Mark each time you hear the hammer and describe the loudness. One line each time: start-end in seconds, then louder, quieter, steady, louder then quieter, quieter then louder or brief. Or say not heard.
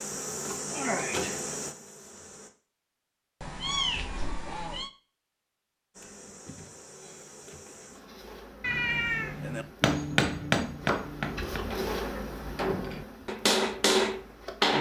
9.4-14.7 quieter then louder.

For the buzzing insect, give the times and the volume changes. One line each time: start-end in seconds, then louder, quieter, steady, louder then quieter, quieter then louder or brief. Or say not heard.
0.0-2.5 brief
6.0-14.7 louder then quieter.